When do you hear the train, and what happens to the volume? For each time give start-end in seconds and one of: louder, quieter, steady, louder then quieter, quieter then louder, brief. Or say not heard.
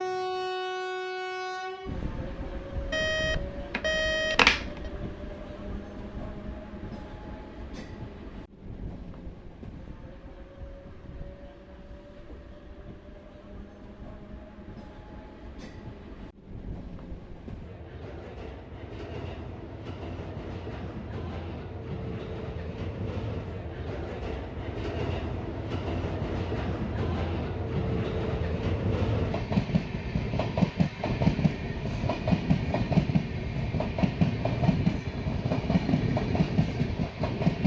0.0-37.6 quieter then louder.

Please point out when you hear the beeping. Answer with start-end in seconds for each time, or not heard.
2.9-4.8.